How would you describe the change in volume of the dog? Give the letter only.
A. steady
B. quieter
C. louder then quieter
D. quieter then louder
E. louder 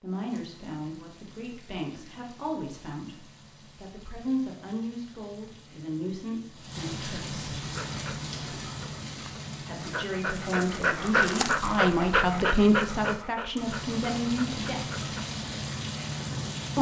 C.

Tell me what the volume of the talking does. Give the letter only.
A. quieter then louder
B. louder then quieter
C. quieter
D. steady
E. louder
E.